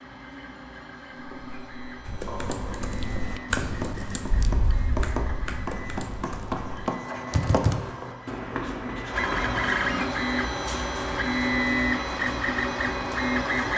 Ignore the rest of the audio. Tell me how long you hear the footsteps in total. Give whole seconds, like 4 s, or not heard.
not heard.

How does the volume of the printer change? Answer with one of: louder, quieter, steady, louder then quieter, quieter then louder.
louder.